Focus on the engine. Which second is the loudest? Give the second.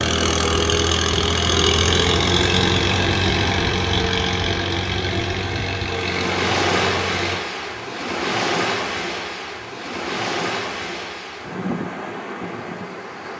2 s.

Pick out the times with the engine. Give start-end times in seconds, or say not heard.
0.0-7.5.